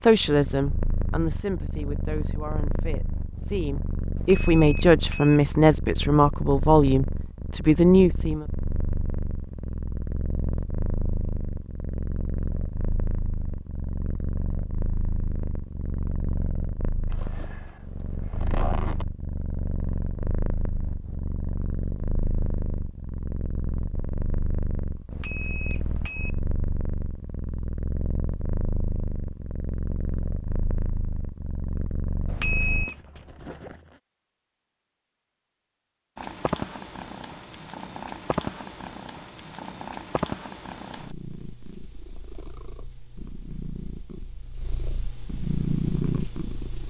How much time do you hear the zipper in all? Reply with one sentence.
The zipper can be heard for 3 seconds in total.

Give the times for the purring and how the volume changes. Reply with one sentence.
You can hear the purring from 0.0 to 32.9 s, at a steady volume; and from 36.1 to 46.8 s, getting quieter then louder.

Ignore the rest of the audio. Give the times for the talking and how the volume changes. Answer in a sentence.
You can hear the talking from 0.0 to 8.4 s, getting quieter then louder.